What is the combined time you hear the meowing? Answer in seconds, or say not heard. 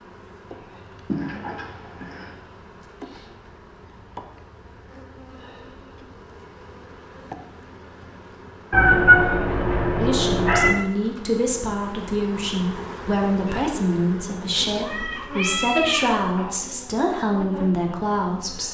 5 s.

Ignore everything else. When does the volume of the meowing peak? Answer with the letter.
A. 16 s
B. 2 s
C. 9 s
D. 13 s
C.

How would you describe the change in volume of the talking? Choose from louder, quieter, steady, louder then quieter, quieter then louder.
steady.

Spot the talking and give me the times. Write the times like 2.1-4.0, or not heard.
9.9-18.6.